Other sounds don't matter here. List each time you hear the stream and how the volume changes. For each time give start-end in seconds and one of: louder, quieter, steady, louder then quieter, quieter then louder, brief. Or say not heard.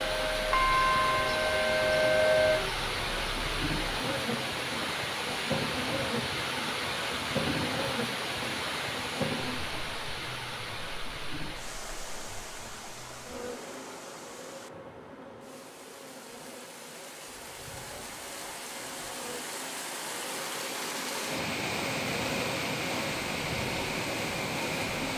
0.0-25.1 quieter then louder.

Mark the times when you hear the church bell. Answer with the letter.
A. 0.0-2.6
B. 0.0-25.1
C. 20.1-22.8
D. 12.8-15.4
A.